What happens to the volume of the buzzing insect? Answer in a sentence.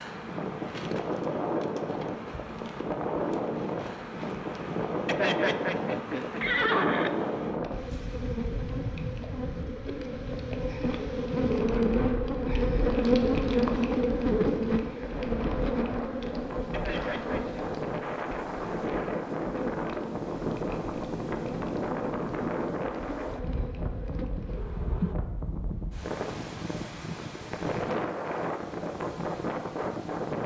The loudness of the buzzing insect goes up, then down.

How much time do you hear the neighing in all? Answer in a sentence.
You can hear the neighing for 3 seconds altogether.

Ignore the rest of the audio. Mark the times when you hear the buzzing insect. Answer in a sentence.
The buzzing insect can be heard from 0.0 to 25.1 s.